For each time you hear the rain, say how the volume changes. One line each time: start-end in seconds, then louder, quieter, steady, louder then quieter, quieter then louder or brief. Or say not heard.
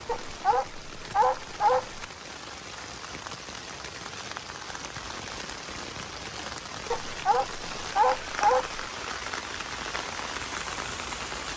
0.0-11.5 louder.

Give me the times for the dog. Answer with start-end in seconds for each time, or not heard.
0.1-2.0, 6.9-8.8.